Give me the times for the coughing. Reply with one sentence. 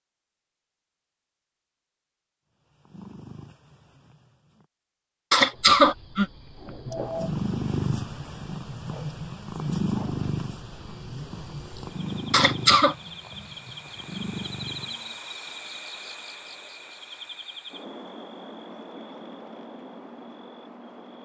You can hear the coughing from 5.3 to 7.3 s and from 12.3 to 12.9 s.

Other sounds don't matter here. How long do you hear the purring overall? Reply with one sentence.
The purring can be heard for 10 seconds in total.